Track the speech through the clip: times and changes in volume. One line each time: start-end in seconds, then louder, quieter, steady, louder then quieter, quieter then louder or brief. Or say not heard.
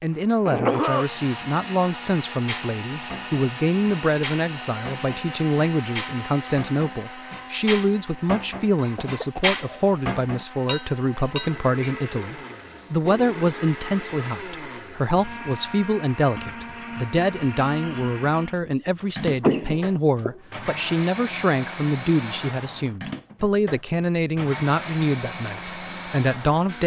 0.0-26.8 steady.